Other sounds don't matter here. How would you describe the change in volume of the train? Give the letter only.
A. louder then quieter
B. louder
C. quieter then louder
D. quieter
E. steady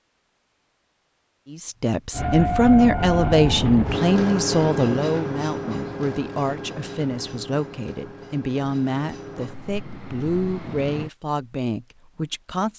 D.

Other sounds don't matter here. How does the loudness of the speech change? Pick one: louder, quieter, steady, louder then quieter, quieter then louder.
quieter.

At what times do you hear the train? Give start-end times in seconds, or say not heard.
2.1-11.1.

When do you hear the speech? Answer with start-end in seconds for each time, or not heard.
1.5-12.7.